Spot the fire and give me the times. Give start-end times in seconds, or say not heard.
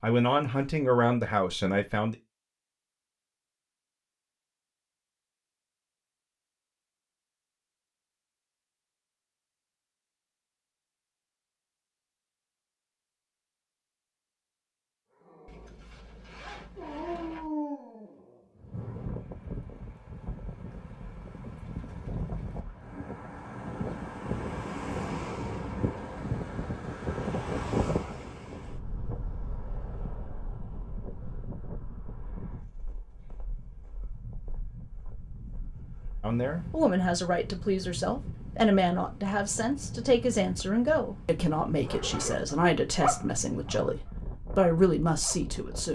not heard.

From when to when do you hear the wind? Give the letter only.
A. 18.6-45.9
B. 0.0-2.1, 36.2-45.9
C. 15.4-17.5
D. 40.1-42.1
A.